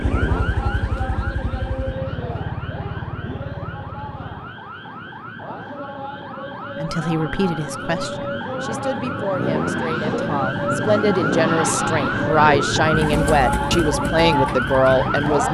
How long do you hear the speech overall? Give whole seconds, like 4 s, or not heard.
9 s.